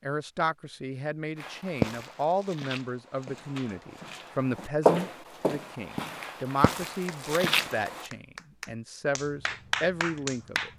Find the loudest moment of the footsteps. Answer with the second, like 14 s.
5 s.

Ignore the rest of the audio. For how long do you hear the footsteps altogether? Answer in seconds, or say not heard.
7 s.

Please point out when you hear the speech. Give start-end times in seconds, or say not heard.
0.0-10.7.